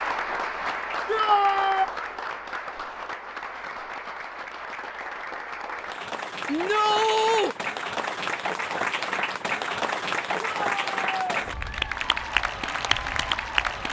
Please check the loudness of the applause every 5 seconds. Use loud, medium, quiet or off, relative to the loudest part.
medium, loud, loud.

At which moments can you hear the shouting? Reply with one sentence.
The shouting can be heard from 1.1 to 1.9 s, from 6.5 to 7.5 s and from 10.4 to 11.4 s.